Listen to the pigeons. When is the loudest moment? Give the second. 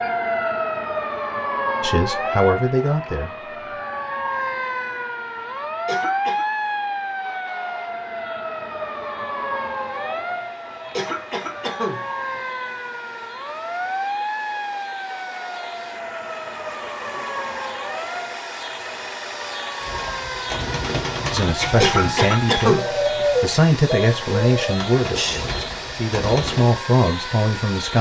23 s.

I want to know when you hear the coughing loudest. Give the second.
23 s.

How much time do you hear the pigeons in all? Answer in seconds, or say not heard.
7 s.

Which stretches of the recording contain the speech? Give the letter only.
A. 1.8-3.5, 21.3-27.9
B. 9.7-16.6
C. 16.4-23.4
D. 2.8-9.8
A.